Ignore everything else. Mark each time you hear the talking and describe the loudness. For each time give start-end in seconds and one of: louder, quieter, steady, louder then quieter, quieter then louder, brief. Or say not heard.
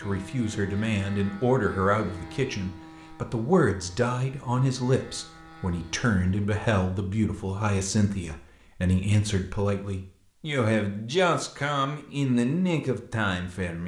0.0-13.8 steady.